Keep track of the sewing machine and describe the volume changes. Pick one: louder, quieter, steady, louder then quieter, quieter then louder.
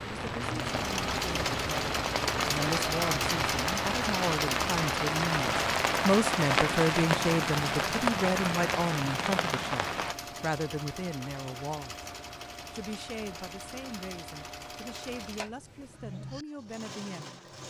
quieter.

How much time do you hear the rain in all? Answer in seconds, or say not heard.
10 s.